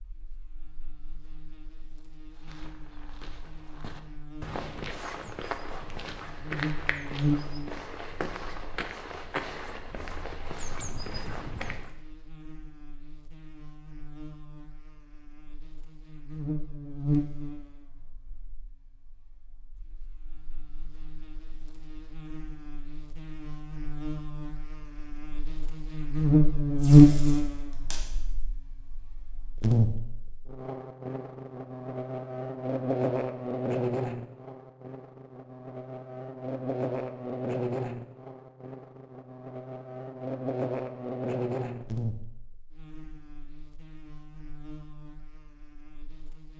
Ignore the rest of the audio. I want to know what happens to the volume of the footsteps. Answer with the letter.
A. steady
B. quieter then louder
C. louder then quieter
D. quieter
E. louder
E.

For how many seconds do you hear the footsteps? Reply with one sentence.
You can hear the footsteps for 10 seconds altogether.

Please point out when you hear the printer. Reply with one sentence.
The printer can't be heard in this clip.